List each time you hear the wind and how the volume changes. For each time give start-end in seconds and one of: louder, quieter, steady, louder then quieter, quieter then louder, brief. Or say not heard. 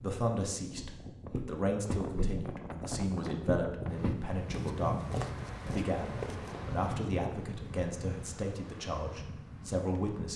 0.0-10.3 louder then quieter.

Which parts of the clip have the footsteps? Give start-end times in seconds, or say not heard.
0.8-6.6.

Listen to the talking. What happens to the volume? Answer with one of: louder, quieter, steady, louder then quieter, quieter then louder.
steady.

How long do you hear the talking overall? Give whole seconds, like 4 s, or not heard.
10 s.